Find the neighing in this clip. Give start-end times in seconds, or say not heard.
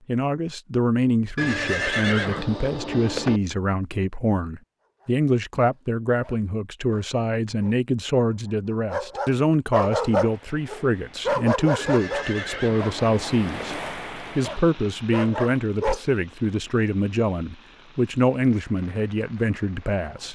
1.4-3.4, 11.8-13.8.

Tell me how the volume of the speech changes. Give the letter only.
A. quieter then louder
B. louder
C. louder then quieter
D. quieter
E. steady
E.